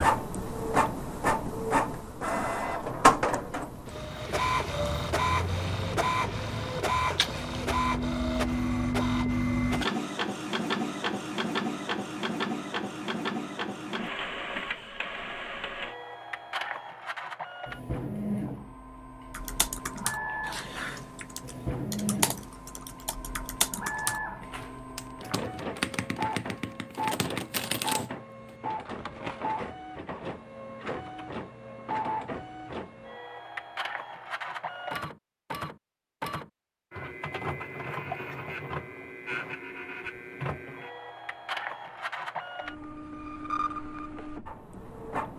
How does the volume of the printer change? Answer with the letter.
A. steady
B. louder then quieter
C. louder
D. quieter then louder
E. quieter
E.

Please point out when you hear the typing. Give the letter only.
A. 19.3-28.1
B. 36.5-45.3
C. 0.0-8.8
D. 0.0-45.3
A.